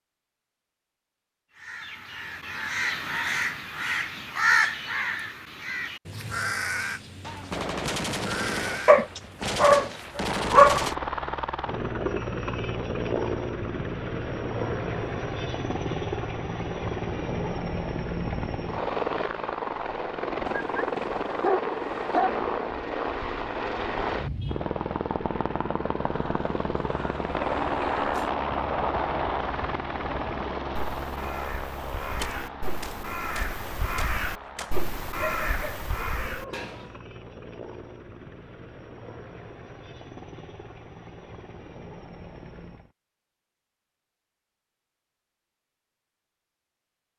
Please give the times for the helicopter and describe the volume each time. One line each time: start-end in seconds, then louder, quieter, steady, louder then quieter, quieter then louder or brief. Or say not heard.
10.1-43.0 quieter.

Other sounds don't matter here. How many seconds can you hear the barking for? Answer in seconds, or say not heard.
5 s.